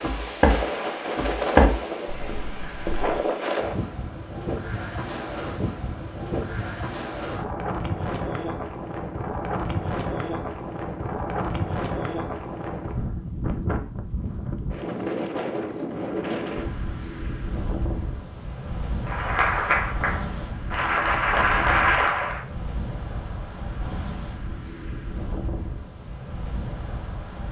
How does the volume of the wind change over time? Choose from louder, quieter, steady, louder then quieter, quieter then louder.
quieter.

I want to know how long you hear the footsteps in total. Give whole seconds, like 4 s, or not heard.
3 s.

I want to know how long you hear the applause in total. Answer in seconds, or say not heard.
3 s.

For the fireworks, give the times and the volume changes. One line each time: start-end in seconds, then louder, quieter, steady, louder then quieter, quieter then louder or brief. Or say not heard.
not heard.